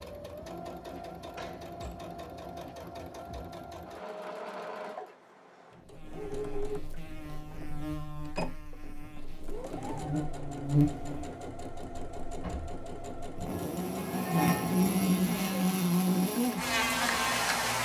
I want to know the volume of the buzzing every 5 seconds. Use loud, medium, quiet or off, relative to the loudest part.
off, quiet, loud, loud.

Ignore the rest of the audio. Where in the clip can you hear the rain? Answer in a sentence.
You can't hear the rain here.